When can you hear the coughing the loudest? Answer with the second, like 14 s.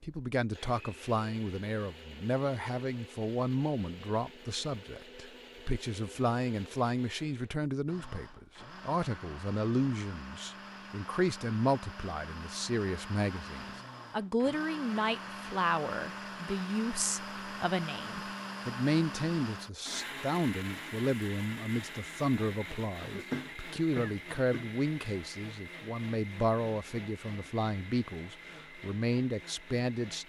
23 s.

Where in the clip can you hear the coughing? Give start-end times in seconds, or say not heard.
23.0-24.7.